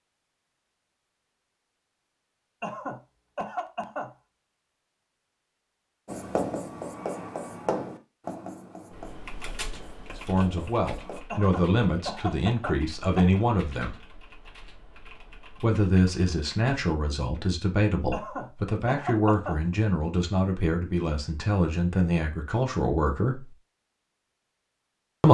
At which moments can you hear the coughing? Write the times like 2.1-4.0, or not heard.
2.6-4.2, 11.3-13.3, 18.1-19.6.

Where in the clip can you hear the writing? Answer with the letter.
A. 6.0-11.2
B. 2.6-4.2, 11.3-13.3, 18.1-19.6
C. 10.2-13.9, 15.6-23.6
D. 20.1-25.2
A.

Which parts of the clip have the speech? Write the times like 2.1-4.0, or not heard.
10.2-13.9, 15.6-23.6.